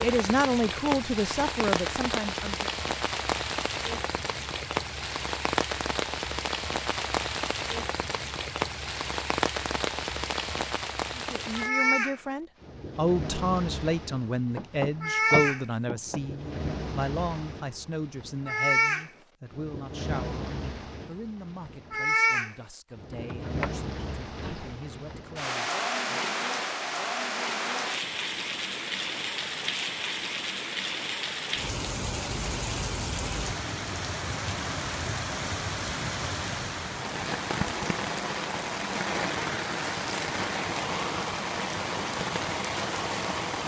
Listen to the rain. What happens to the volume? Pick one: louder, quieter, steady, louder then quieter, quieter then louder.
steady.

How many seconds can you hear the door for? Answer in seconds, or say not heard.
3 s.